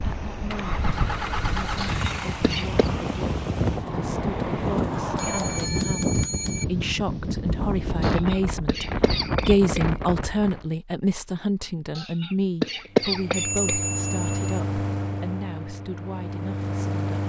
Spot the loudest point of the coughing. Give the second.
13 s.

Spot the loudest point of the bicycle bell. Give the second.
14 s.